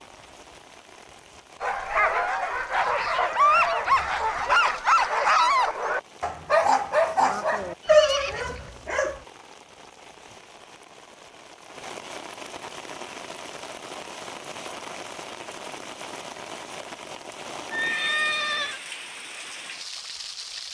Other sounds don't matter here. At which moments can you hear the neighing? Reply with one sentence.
You can hear the neighing from 2.8 to 4.6 s, from 7.2 to 8.8 s and from 17.7 to 18.8 s.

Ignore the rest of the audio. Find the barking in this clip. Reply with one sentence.
You can hear the barking from 1.6 to 9.2 s.